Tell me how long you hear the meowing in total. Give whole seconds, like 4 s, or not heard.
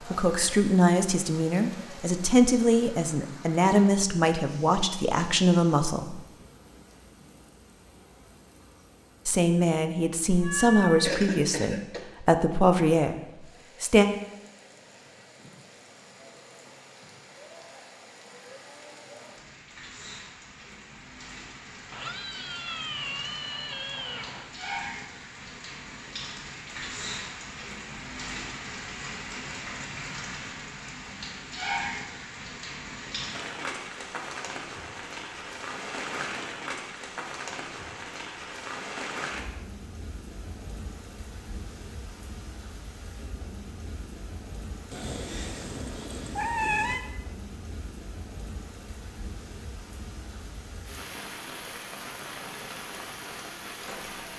6 s.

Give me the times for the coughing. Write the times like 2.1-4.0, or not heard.
11.1-12.1.